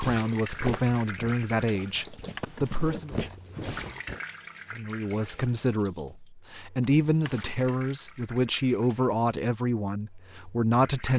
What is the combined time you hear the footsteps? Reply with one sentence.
You can hear the footsteps for 4 seconds altogether.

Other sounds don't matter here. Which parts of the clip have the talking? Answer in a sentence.
The talking can be heard from 0.0 to 3.1 s and from 4.7 to 11.1 s.